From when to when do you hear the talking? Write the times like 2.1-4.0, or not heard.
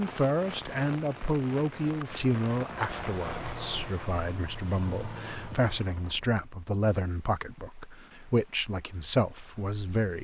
0.0-10.1.